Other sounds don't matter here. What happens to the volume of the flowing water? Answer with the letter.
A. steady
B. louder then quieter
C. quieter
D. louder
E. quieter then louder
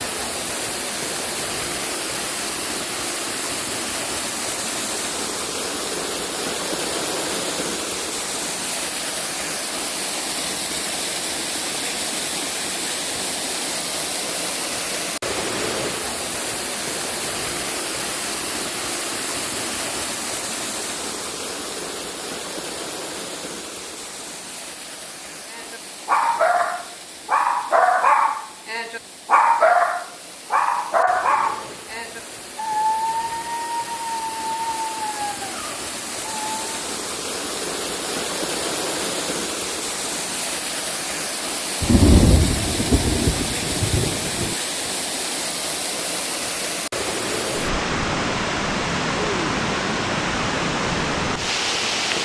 E.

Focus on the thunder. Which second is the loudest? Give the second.
42 s.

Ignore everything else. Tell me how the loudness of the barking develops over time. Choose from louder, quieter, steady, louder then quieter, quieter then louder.
quieter.